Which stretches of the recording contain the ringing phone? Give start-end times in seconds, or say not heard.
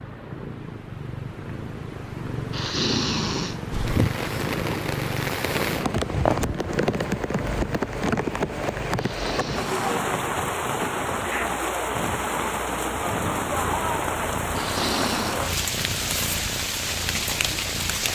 not heard.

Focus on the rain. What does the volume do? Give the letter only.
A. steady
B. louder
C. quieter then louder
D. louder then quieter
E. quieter
A.